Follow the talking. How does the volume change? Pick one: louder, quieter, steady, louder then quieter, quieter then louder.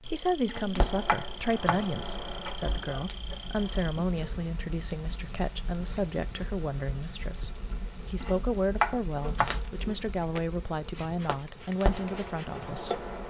steady.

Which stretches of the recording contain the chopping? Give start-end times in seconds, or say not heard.
0.5-1.9, 8.2-9.6.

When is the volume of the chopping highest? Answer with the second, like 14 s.
9 s.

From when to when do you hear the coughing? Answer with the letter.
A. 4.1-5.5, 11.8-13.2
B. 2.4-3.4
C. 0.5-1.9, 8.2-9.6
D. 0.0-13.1
B.